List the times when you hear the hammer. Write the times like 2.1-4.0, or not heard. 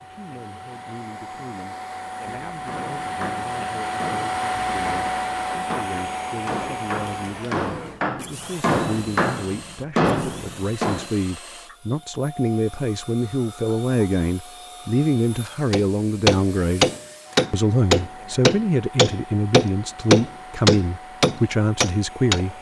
2.6-11.1, 15.7-22.4.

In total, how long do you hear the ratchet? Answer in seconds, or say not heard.
not heard.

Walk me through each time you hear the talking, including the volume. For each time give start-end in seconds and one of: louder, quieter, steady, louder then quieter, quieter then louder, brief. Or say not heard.
0.0-16.9 louder
17.5-22.5 steady.